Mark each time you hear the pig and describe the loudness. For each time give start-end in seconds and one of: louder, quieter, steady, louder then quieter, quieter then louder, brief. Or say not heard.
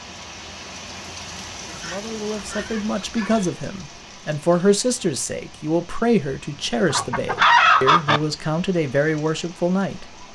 not heard.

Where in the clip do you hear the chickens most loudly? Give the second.
8 s.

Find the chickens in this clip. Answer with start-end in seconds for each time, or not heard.
1.6-3.5, 6.9-8.2.